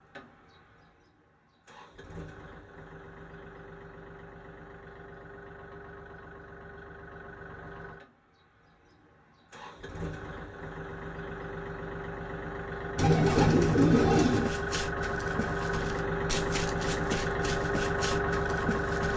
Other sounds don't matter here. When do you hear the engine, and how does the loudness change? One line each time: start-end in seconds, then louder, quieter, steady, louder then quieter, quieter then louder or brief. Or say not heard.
0.0-19.1 louder.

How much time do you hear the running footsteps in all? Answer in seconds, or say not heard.
5 s.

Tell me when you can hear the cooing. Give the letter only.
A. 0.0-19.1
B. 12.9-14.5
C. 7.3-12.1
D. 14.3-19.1
B.